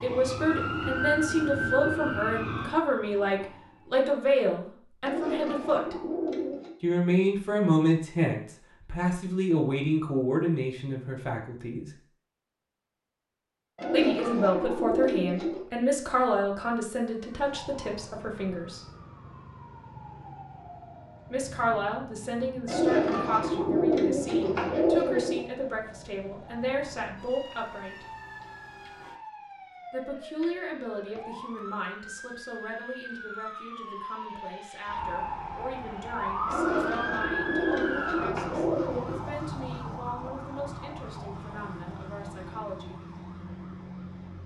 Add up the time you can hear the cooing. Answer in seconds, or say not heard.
9 s.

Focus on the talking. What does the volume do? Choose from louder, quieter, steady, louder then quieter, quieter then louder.
quieter.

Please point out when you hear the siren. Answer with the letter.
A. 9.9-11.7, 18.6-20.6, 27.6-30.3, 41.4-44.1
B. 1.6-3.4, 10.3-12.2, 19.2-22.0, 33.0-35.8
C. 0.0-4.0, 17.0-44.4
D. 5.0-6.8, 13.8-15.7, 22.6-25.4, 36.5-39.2
C.